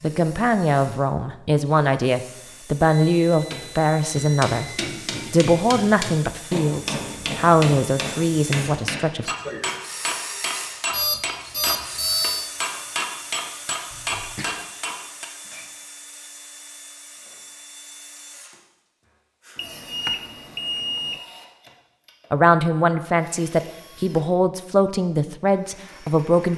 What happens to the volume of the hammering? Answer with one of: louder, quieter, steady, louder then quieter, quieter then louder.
steady.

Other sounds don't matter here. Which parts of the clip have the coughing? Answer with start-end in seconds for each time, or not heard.
9.2-9.8, 13.9-14.6.